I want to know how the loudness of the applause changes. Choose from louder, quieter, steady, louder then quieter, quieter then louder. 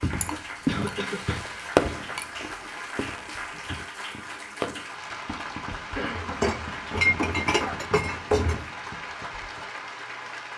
steady.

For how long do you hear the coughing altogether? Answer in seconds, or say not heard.
3 s.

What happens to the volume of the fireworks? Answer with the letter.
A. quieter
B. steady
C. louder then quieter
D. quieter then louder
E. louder
A.